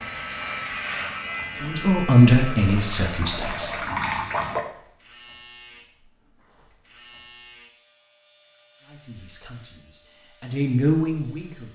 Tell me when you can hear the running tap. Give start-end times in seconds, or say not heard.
0.1-4.7.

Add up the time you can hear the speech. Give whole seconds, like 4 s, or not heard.
5 s.